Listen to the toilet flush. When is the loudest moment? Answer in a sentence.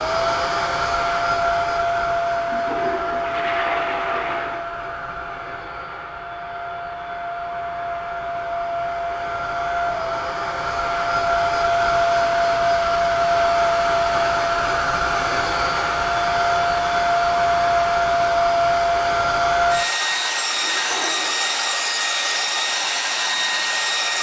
The volume of the toilet flush peaks at 4 seconds.